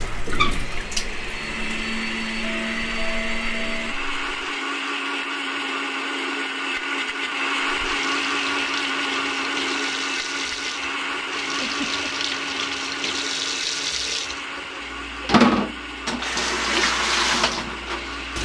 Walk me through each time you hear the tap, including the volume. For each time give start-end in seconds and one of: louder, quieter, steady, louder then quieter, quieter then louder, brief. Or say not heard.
0.0-4.5 quieter
7.6-18.4 louder.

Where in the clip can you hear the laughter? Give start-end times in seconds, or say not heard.
11.6-12.1.